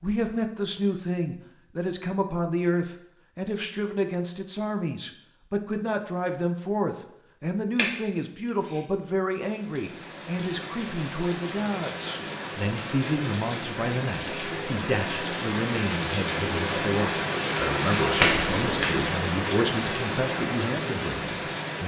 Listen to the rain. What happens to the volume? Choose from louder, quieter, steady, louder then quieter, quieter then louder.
louder.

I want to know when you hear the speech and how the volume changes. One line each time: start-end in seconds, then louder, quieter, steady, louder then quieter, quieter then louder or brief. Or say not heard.
0.0-21.8 steady.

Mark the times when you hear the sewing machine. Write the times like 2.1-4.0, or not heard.
not heard.